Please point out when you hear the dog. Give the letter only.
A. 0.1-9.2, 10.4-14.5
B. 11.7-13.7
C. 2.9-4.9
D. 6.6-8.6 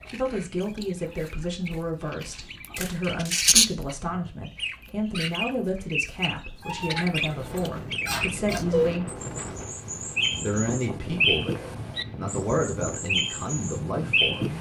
D.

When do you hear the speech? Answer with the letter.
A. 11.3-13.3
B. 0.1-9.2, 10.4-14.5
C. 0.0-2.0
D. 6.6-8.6
B.